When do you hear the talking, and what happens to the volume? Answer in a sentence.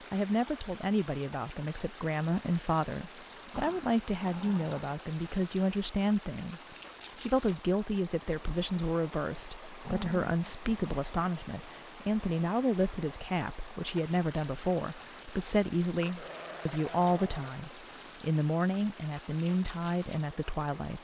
The talking can be heard from 0.1 to 20.9 s, at a steady volume.